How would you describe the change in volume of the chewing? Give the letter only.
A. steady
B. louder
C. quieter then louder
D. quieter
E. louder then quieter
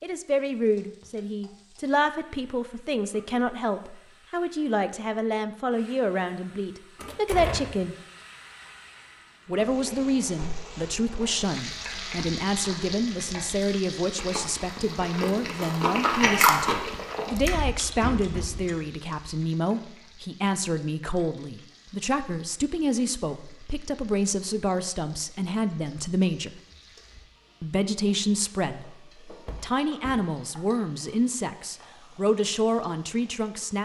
E.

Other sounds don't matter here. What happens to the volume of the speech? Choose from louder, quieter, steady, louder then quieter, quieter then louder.
steady.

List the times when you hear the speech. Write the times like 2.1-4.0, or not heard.
0.0-8.0, 9.4-26.5, 27.6-33.7.